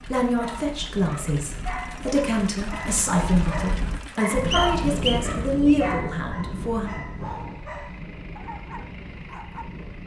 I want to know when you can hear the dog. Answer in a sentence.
The dog can be heard from 0.3 to 9.7 s.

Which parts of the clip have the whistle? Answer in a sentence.
You can hear the whistle from 4.5 to 5.9 s.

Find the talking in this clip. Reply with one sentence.
The talking can be heard from 0.1 to 6.9 s.